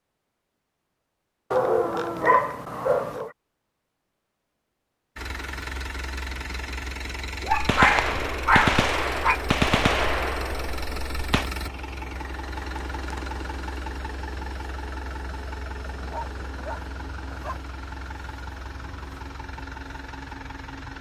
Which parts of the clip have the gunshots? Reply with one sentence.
The gunshots can be heard from 7.5 to 11.5 s.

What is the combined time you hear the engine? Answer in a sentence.
The engine can be heard for 16 seconds in total.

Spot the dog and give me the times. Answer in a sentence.
You can hear the dog from 1.5 to 3.3 s, from 7.4 to 9.4 s and from 15.8 to 17.6 s.